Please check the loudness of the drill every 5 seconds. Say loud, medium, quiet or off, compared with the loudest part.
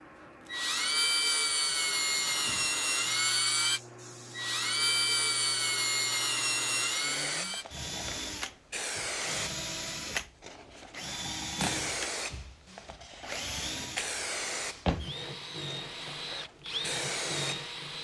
loud, loud, medium, medium.